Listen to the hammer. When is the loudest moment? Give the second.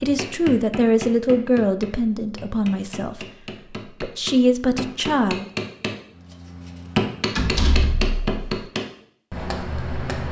7 s.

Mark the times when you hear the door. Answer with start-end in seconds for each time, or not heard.
7.3-8.6.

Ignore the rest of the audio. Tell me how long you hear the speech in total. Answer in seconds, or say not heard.
5 s.